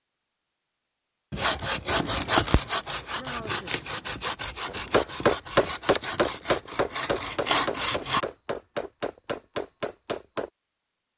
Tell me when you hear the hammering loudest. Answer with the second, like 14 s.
5 s.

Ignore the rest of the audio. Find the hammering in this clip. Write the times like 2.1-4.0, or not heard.
4.7-10.5.